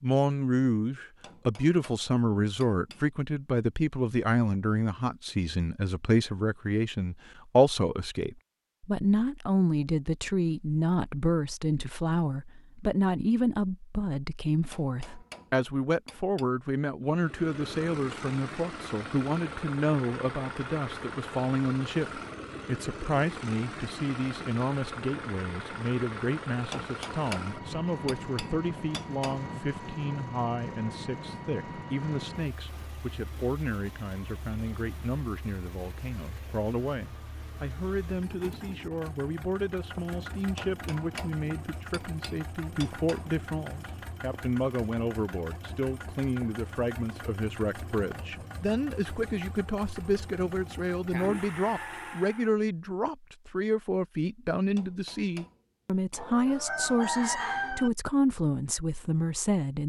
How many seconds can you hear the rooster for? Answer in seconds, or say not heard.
2 s.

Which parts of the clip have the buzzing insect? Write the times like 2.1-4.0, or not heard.
not heard.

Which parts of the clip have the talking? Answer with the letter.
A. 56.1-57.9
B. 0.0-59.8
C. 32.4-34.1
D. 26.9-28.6
B.